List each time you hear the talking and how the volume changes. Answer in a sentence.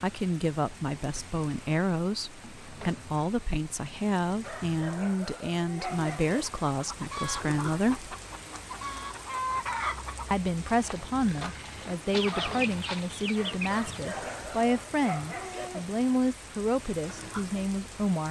The talking can be heard from 0.0 to 8.1 s, at a steady volume; and from 10.3 to 18.2 s, at a steady volume.